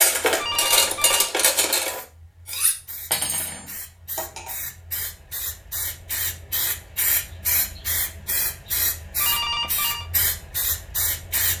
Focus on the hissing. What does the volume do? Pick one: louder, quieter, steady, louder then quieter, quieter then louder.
louder.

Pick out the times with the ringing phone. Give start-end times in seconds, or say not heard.
0.3-1.3, 9.2-10.1.